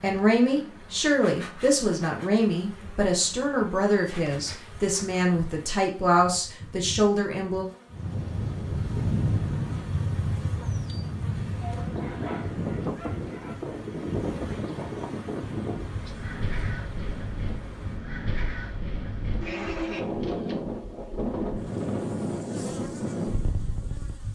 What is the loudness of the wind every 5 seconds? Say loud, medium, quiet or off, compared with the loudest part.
off, loud, loud, medium, loud.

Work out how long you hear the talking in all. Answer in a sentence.
The talking can be heard for 8 seconds in total.